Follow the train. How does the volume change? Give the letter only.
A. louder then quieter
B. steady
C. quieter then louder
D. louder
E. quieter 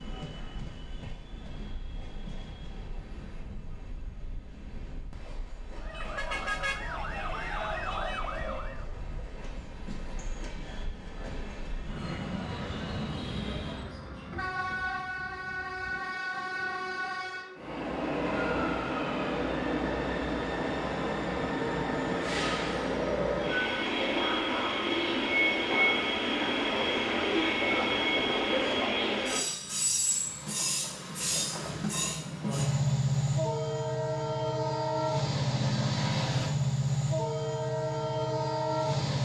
D.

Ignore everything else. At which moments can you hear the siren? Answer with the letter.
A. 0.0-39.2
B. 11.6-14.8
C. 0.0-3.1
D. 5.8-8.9
D.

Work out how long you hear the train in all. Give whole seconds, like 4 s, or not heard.
39 s.